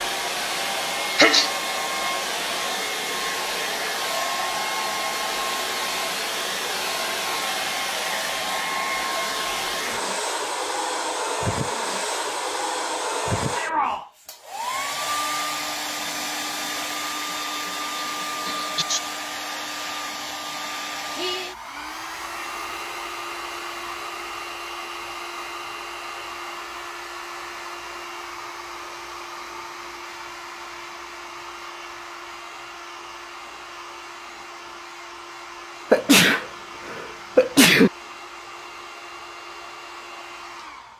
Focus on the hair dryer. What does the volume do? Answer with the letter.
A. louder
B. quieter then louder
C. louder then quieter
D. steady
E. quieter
E.